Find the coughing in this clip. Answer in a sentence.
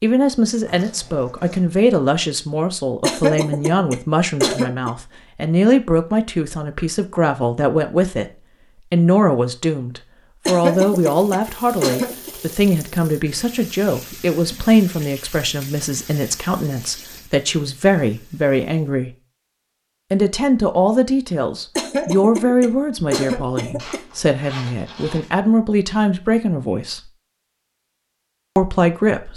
The coughing can be heard from 3.0 to 4.9 s, from 10.4 to 12.3 s and from 21.8 to 24.0 s.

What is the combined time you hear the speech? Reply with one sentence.
You can hear the speech for 26 seconds altogether.